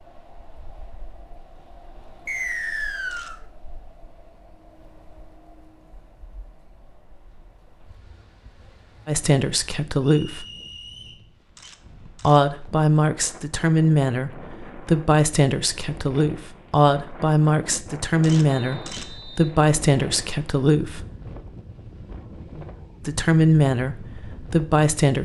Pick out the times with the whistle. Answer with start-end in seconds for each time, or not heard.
2.2-3.4, 10.0-11.2, 18.4-19.5.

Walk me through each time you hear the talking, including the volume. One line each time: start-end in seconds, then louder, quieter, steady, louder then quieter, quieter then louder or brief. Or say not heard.
9.1-10.4 brief
12.2-21.1 steady
23.0-25.2 brief.